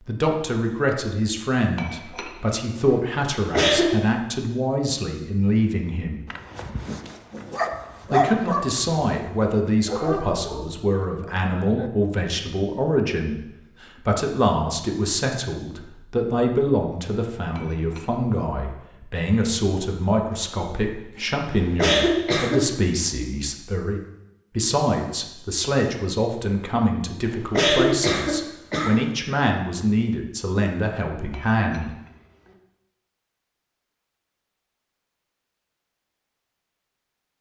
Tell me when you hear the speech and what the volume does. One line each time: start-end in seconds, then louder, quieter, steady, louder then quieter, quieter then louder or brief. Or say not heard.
0.0-6.2 steady
8.1-31.9 steady.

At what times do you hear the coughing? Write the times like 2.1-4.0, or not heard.
3.4-4.0, 21.6-22.6, 27.2-29.1.